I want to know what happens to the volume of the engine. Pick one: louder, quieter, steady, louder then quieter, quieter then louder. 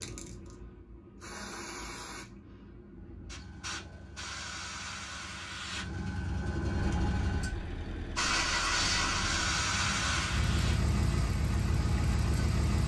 louder.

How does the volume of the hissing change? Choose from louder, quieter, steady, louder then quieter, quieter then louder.
louder.